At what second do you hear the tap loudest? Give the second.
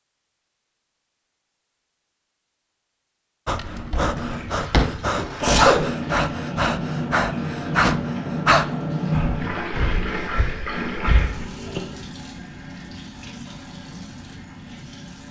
9 s.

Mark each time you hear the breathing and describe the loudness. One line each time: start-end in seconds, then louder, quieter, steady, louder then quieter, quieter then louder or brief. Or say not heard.
3.5-11.4 louder then quieter.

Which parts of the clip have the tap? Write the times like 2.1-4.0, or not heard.
4.2-15.2.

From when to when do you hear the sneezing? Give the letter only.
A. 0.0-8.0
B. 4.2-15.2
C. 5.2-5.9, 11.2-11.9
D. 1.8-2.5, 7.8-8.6
C.